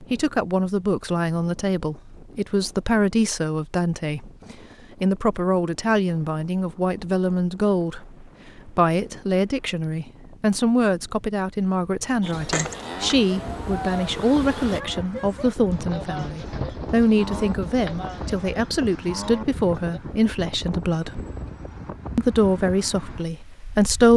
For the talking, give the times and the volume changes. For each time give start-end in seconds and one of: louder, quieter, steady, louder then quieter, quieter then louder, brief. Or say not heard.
0.0-21.2 steady
22.1-24.1 brief.